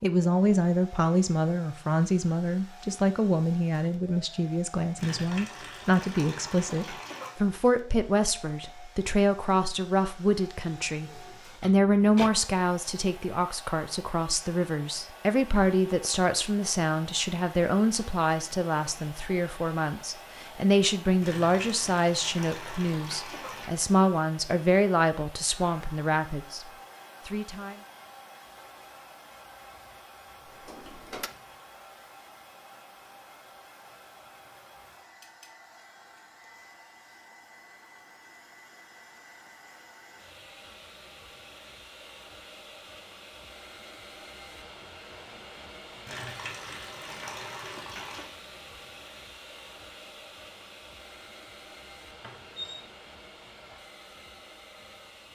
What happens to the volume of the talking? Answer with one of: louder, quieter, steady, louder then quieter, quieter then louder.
steady.